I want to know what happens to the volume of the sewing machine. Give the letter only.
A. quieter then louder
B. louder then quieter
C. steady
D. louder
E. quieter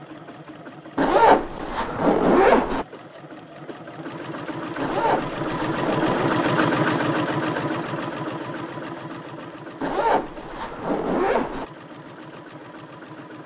B.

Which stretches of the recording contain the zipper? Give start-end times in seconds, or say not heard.
0.9-2.9, 4.8-6.3, 9.8-11.7.